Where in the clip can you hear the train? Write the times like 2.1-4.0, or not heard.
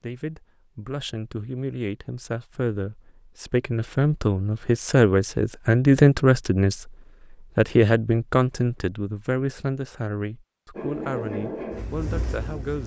10.8-12.8.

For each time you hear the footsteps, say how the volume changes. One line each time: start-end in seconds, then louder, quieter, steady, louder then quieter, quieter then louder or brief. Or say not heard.
not heard.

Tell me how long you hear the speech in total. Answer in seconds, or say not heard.
13 s.